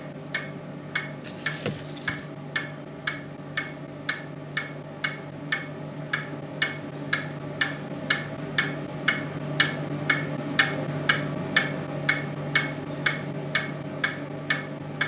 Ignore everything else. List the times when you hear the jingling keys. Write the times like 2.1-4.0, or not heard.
1.2-2.2.